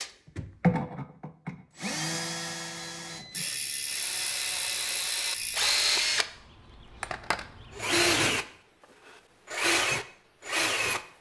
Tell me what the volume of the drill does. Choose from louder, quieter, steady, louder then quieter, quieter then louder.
quieter then louder.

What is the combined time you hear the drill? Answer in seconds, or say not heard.
11 s.